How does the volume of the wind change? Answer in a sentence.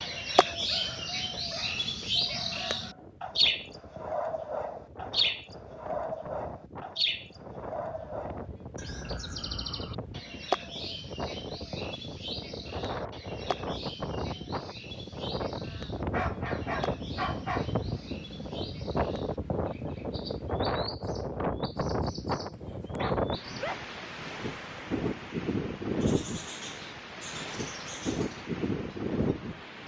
The volume of the wind goes up.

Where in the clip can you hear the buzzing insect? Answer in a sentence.
The buzzing insect can't be heard in this clip.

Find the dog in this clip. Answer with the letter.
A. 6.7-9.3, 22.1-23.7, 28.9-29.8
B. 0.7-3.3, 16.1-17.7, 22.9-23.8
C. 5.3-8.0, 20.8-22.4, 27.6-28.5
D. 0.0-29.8
B.